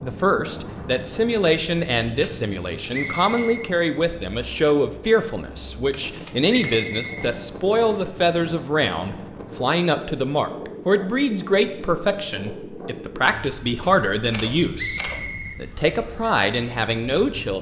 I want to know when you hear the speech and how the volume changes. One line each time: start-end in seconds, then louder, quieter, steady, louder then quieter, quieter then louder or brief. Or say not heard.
0.0-17.5 steady.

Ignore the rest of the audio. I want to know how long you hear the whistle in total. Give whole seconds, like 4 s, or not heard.
3 s.